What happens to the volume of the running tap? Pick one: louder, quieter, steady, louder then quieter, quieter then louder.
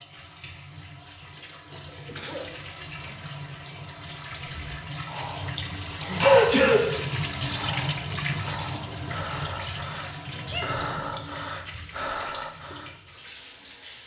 louder then quieter.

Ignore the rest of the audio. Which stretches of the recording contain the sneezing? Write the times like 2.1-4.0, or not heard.
1.9-3.1, 6.2-6.8, 10.3-10.8.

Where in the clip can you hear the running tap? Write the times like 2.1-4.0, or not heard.
0.0-14.0.